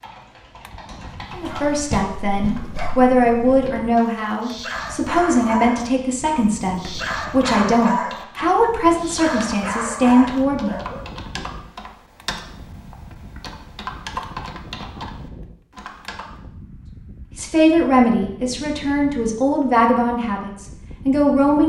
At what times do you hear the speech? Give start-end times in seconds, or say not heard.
1.3-10.8, 17.4-21.6.